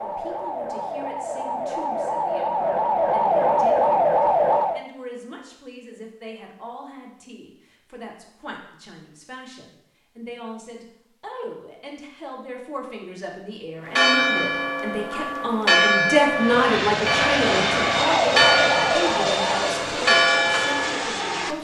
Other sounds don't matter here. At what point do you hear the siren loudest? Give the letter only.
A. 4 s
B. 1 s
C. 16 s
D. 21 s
A.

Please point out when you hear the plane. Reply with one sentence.
The plane can be heard from 16.2 to 21.5 s.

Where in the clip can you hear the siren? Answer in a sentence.
The siren can be heard from 0.0 to 4.8 s and from 18.1 to 21.5 s.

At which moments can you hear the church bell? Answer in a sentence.
The church bell can be heard from 13.8 to 21.1 s.